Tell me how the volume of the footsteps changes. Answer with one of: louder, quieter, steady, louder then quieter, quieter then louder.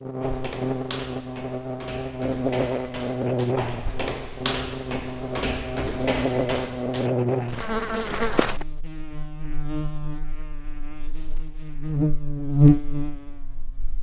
louder then quieter.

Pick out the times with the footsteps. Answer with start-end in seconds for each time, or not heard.
0.2-8.7.